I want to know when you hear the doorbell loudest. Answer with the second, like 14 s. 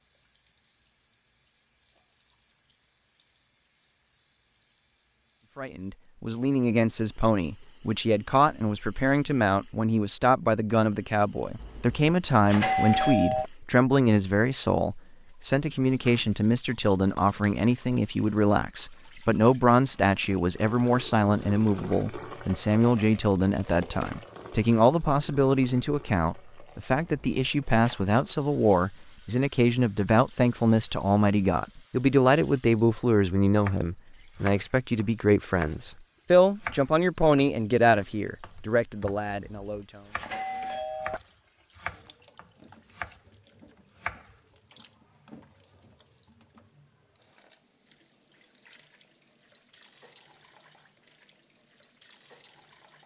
13 s.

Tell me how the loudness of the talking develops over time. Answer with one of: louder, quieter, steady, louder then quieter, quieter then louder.
steady.